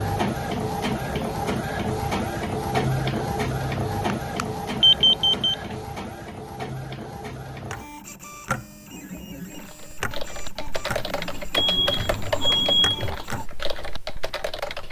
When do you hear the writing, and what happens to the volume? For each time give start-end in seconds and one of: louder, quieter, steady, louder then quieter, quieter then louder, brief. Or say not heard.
not heard.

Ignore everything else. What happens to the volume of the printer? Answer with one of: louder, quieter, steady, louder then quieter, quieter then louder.
quieter.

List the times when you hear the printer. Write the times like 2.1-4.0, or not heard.
0.0-13.5.